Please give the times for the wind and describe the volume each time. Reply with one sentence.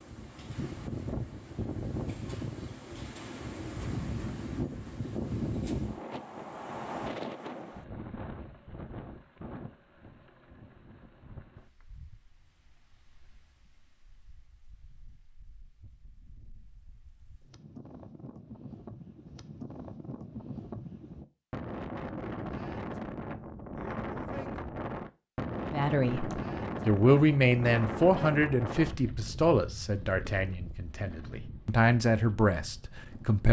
The wind can be heard from 0.0 to 33.4 s, getting quieter then louder.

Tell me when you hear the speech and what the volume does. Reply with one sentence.
You can hear the speech from 25.7 to 33.4 s, getting quieter then louder.